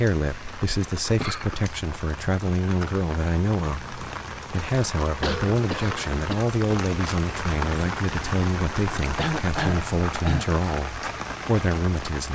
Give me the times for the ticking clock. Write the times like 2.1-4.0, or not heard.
not heard.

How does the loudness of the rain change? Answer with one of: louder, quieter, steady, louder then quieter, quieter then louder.
louder.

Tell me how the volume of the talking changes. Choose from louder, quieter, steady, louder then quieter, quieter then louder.
steady.